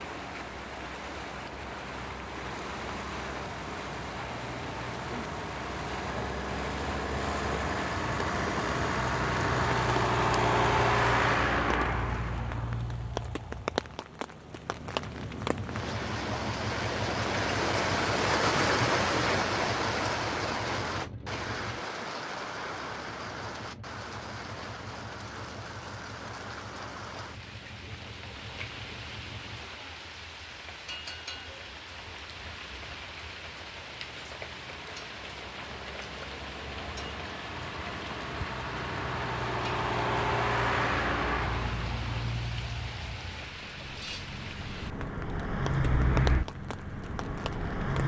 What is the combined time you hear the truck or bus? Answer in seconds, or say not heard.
48 s.